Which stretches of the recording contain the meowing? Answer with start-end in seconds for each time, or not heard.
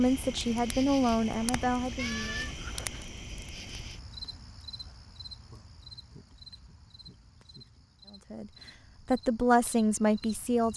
1.9-3.1.